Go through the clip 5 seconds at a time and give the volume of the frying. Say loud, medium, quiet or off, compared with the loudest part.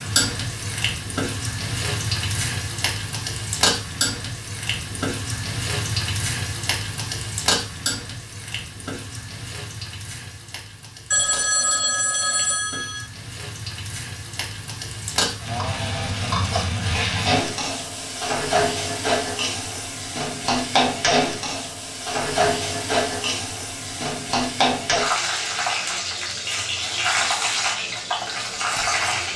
loud, medium, quiet, loud, loud, loud.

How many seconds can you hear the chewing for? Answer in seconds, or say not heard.
not heard.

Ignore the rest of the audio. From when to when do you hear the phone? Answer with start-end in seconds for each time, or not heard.
11.1-13.1.